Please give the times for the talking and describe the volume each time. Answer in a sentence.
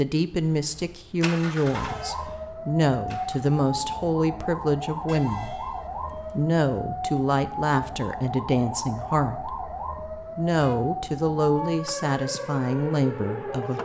The talking can be heard from 0.0 to 13.7 s, at a steady volume.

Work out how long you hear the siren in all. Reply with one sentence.
You can hear the siren for 12 seconds altogether.